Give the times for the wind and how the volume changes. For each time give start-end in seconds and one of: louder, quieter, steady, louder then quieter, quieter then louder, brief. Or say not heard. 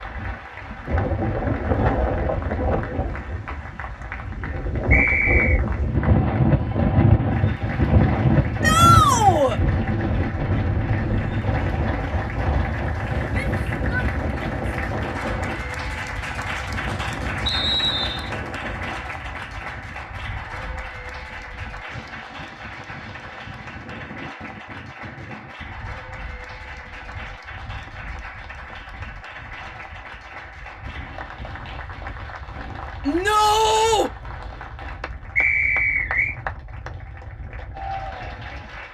0.0-38.8 quieter.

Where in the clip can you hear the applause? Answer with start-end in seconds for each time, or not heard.
0.0-38.8.